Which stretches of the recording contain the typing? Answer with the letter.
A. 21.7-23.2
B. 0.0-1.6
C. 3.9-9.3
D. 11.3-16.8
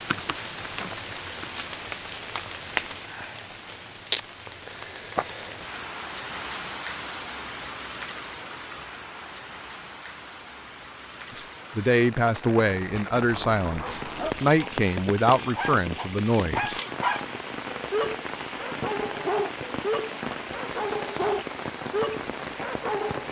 B.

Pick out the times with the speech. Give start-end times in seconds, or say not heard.
11.3-16.8.